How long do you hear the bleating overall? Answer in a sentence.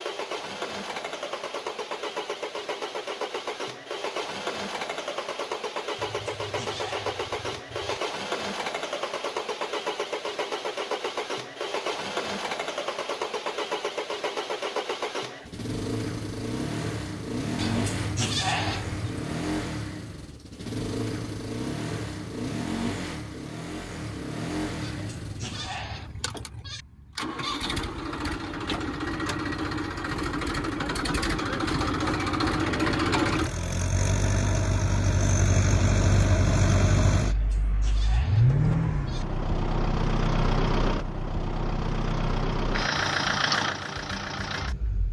You can hear the bleating for 8 seconds altogether.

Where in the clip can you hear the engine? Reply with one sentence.
The engine can be heard from 0.0 to 45.0 s.